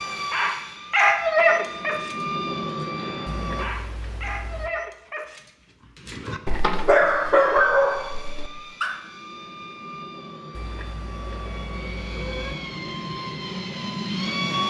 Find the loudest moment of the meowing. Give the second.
12 s.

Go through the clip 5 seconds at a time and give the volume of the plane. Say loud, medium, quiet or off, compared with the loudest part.
loud, medium, loud.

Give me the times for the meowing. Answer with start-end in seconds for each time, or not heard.
3.2-4.7, 10.5-12.6.